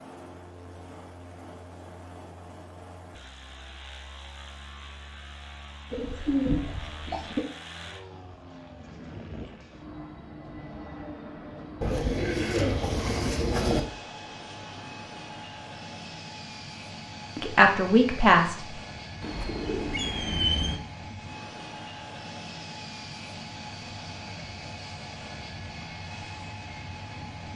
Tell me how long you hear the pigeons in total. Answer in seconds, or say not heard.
5 s.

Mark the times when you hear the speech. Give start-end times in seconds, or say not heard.
17.4-18.6.